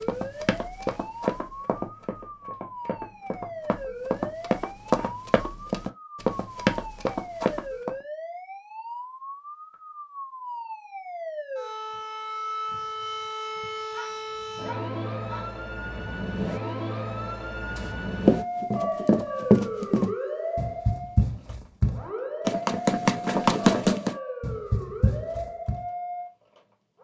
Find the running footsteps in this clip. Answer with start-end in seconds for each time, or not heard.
0.0-7.9, 17.8-25.8.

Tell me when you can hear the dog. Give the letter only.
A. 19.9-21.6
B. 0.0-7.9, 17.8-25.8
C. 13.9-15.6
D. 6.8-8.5
C.